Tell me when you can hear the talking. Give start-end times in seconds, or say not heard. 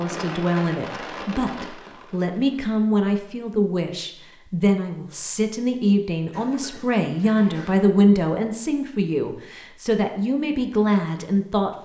0.0-11.8.